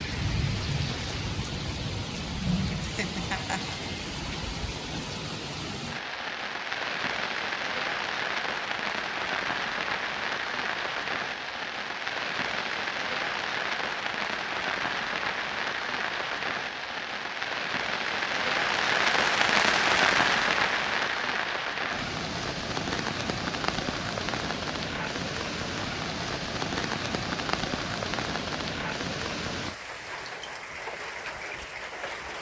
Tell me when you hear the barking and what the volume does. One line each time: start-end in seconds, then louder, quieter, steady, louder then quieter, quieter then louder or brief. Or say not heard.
not heard.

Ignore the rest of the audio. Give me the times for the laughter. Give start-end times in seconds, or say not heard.
2.8-3.8.